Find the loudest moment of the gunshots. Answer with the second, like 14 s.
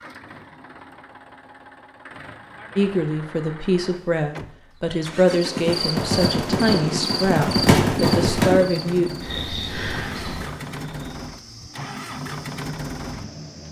8 s.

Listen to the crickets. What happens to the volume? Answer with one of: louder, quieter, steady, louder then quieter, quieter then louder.
quieter.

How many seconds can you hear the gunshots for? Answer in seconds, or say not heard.
3 s.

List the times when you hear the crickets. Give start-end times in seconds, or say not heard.
5.2-13.6.